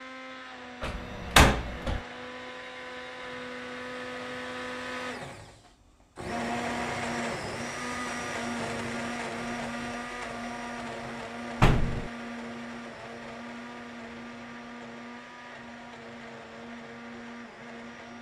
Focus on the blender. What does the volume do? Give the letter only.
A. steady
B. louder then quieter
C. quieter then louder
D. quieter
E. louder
B.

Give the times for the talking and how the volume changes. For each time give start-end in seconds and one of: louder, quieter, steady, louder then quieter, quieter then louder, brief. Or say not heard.
not heard.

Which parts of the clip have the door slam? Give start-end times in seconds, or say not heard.
0.8-2.0, 11.6-12.1.